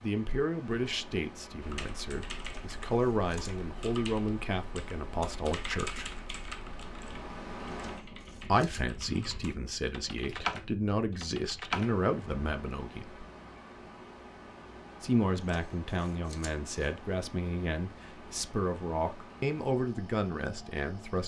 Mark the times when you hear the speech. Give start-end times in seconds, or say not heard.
0.0-6.1, 8.4-13.2, 15.0-21.2.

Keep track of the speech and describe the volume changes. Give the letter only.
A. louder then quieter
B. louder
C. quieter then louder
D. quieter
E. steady
E.